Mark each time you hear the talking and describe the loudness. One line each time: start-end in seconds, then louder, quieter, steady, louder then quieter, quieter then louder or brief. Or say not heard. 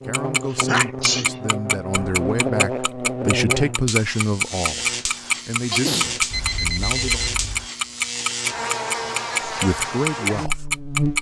0.0-7.2 louder then quieter
9.4-10.7 brief.